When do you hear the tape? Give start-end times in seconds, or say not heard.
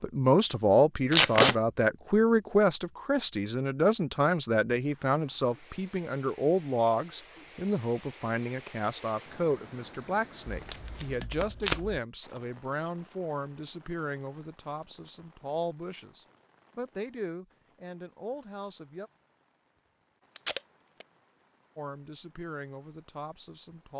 1.1-1.6, 10.4-12.0, 20.4-21.1.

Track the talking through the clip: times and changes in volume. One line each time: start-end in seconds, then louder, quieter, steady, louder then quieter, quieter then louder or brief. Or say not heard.
0.0-19.1 quieter
21.8-23.9 brief.